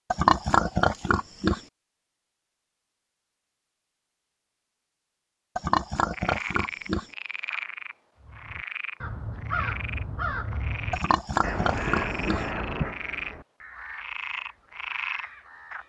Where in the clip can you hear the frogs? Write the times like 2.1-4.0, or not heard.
6.1-15.8.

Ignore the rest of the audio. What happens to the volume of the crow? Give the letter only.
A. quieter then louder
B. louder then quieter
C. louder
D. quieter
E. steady
D.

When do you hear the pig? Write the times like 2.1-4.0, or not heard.
0.1-1.6, 5.5-7.1, 10.9-12.4.